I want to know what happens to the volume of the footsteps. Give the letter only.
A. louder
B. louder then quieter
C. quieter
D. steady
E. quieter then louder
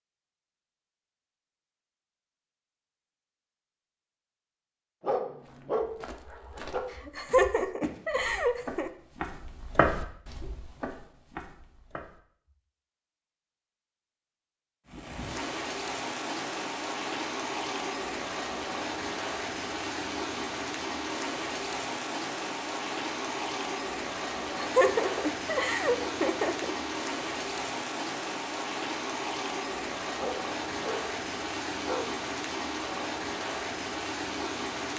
B.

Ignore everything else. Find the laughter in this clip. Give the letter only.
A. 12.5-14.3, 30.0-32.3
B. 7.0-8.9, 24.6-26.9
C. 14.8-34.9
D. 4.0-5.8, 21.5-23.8
B.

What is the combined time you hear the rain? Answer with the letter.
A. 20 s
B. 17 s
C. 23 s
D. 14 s
A.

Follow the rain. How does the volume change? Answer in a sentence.
The loudness of the rain stays about the same.